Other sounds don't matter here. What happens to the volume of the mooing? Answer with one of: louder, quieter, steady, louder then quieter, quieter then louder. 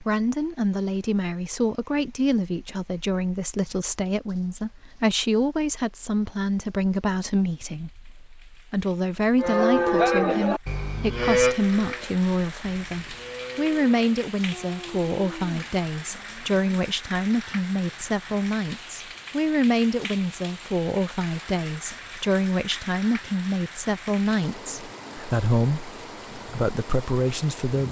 quieter.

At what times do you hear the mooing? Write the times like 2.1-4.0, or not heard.
9.3-16.6.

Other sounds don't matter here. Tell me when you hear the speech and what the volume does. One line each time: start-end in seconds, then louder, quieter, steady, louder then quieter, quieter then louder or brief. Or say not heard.
0.0-27.8 steady.